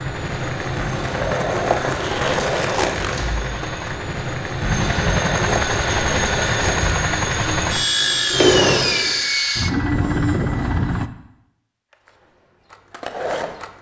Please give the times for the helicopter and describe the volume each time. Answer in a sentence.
The helicopter can be heard from 0.0 to 11.1 s, getting louder.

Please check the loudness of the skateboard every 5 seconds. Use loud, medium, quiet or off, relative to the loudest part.
loud, loud, medium.